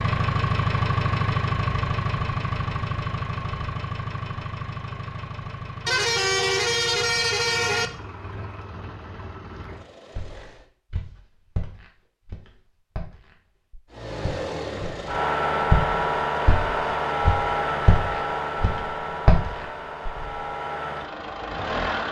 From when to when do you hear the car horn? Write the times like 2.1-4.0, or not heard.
5.8-7.9.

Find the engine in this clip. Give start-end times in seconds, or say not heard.
0.0-10.7, 13.9-22.0.